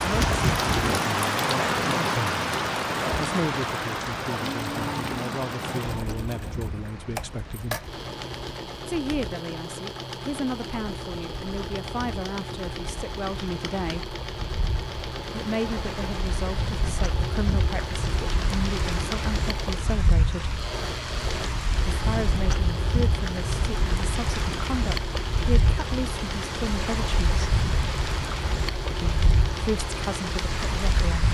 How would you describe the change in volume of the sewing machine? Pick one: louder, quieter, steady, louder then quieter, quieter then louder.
steady.